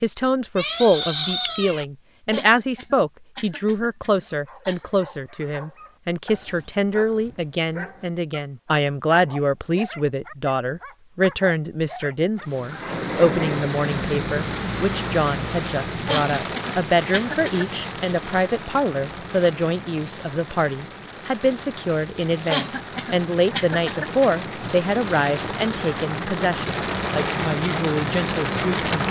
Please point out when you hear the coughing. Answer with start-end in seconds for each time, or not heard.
2.3-4.9, 16.1-17.6, 22.4-24.4.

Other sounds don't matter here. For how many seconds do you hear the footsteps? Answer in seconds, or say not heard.
not heard.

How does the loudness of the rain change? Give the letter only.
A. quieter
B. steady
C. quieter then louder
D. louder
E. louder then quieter
C.